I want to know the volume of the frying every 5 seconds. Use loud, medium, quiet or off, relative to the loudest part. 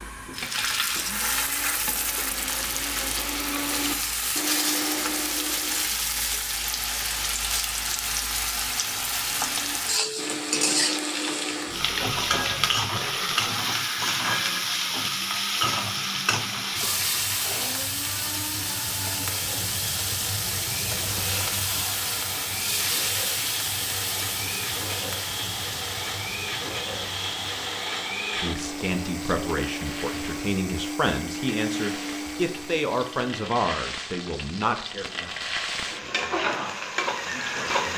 loud, loud, loud, loud, loud, medium, medium, loud.